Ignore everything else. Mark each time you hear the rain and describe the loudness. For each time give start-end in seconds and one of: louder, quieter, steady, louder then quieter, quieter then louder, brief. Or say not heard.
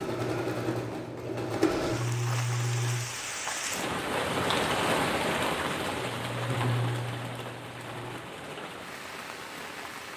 1.6-10.1 louder then quieter.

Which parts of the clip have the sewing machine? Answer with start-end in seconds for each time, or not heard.
0.0-3.0, 6.0-8.2.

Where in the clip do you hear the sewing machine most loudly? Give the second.
2 s.